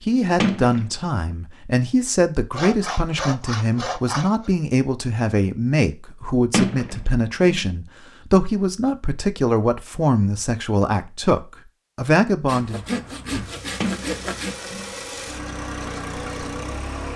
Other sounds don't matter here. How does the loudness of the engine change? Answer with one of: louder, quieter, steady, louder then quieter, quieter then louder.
louder.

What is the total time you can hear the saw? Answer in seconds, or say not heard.
4 s.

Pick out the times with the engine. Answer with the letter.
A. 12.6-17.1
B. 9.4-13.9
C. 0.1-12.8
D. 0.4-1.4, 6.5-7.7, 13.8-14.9
A.